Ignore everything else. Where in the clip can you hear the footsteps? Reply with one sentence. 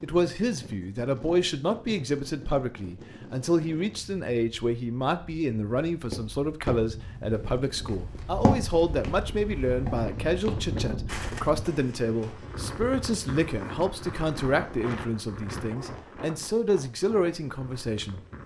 The footsteps can be heard from 5.9 to 12.3 s.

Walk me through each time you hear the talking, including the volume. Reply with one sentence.
You can hear the talking from 0.0 to 18.2 s, at a steady volume.